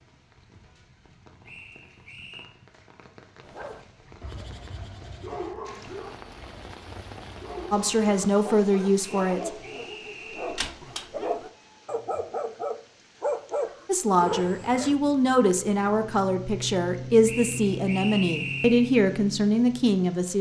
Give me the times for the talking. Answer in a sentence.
The talking can be heard from 7.7 to 9.6 s and from 13.8 to 20.3 s.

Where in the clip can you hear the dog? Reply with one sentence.
The dog can be heard from 3.5 to 14.9 s.